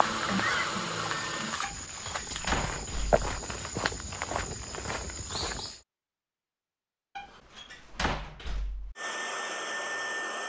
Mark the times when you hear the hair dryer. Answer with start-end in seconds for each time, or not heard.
0.0-1.6, 8.9-10.4.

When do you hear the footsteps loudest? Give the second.
3 s.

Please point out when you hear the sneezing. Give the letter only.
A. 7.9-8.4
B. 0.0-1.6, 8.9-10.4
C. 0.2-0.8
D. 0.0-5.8
C.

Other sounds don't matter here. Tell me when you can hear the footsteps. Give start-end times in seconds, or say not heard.
0.0-5.8.